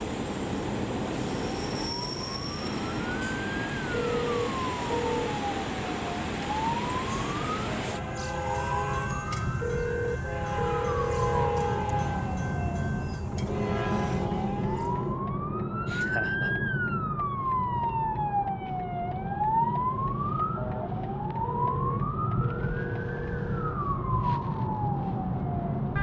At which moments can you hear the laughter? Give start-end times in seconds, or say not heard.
15.8-16.6.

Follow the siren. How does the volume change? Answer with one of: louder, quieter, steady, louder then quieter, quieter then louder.
louder.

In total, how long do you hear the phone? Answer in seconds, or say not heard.
6 s.